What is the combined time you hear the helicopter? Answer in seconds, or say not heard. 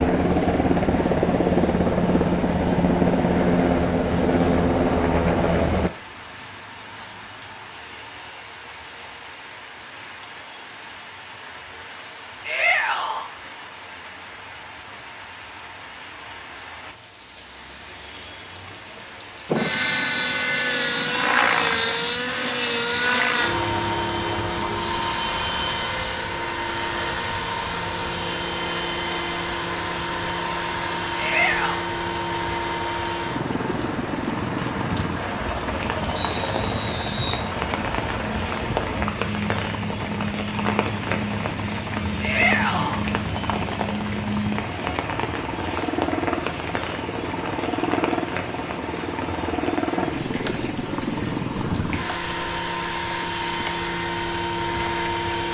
42 s.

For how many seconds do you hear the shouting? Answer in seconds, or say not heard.
2 s.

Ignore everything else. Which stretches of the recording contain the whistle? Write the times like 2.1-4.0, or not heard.
36.1-37.5.